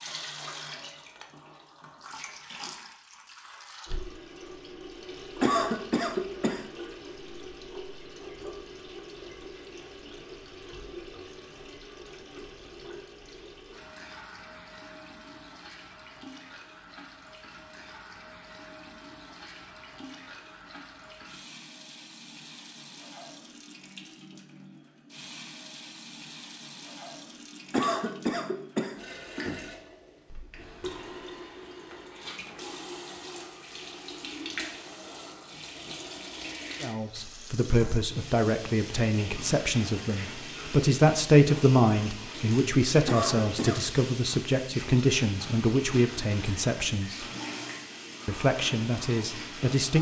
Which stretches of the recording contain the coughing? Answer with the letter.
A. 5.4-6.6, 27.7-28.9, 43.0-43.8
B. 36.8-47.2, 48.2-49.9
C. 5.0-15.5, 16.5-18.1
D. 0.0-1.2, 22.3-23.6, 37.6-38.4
A.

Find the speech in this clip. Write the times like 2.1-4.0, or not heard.
36.8-47.2, 48.2-49.9.